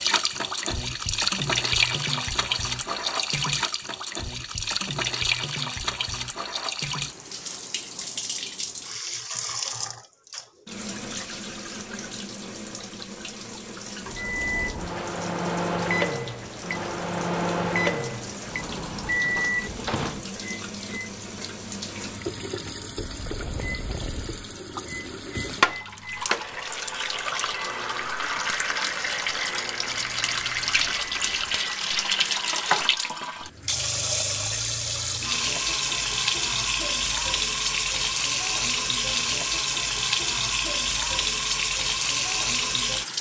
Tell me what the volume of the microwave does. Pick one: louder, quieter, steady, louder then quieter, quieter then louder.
quieter.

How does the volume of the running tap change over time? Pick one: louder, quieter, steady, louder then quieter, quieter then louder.
quieter then louder.